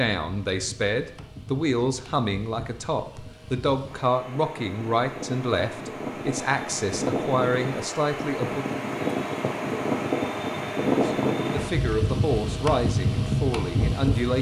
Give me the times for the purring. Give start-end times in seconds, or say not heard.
not heard.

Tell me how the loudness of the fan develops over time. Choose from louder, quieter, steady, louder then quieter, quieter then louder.
louder.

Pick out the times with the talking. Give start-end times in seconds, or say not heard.
0.0-8.7, 11.0-14.3.